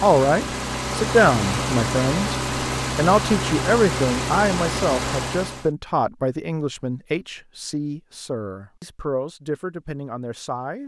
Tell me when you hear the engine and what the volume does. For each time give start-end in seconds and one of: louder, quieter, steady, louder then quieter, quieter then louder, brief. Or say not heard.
0.0-5.7 steady.